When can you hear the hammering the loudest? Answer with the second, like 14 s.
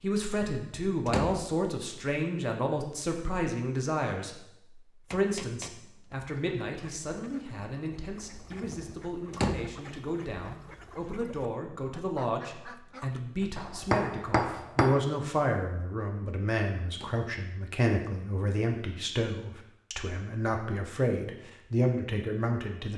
14 s.